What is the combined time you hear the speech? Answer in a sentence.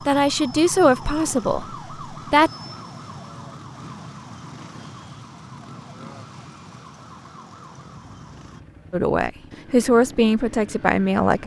The speech can be heard for 5 seconds in total.